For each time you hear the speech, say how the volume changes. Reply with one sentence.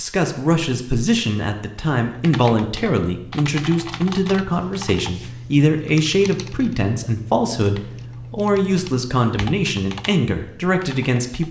The speech can be heard from 0.0 to 11.4 s, at a steady volume.